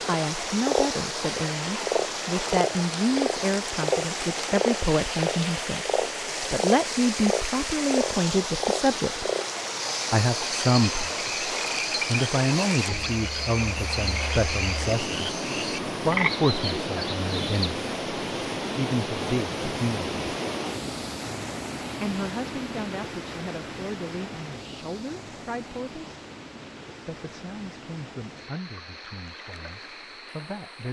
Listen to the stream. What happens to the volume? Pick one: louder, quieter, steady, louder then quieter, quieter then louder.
quieter.